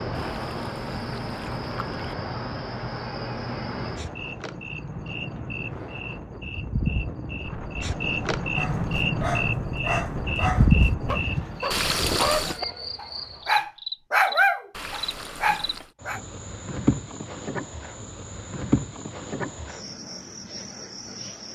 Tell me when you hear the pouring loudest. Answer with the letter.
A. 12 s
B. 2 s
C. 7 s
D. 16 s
A.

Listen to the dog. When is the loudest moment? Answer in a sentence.
The loudest moment of the dog is at 14 seconds.